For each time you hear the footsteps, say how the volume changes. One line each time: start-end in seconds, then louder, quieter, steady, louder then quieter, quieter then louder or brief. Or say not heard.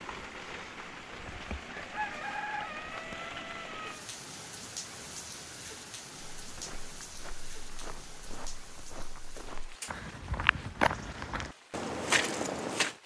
6.4-12.9 louder.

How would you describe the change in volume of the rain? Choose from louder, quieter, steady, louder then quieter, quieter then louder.
quieter.